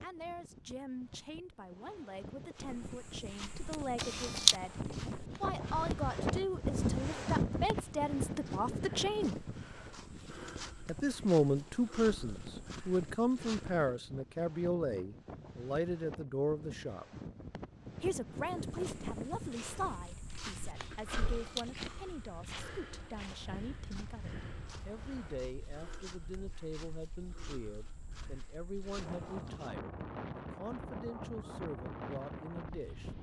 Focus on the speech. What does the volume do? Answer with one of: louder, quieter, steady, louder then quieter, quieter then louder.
louder then quieter.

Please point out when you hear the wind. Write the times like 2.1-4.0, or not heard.
0.0-33.1.